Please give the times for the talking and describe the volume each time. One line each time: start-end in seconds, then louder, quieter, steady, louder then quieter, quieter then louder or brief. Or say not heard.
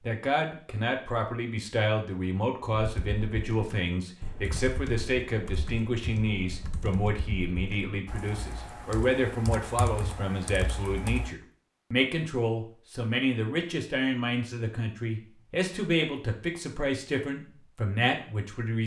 0.0-18.8 steady.